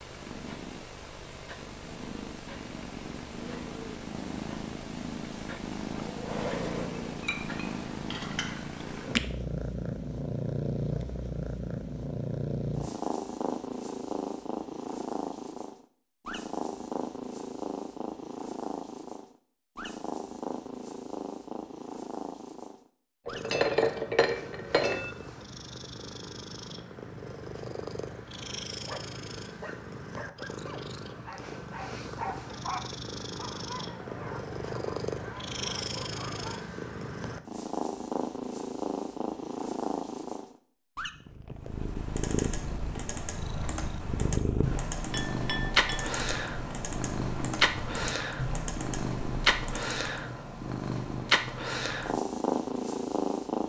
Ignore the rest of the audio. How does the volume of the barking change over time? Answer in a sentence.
The loudness of the barking goes up, then down.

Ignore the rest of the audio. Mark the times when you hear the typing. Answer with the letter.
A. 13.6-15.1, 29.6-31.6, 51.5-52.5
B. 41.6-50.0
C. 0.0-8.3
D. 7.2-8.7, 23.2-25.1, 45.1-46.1
B.